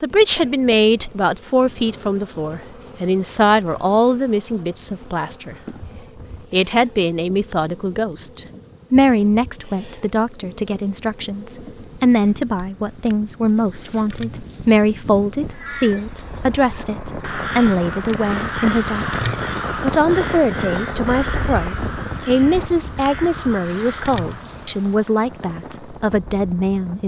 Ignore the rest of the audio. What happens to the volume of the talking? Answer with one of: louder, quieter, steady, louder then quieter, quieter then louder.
steady.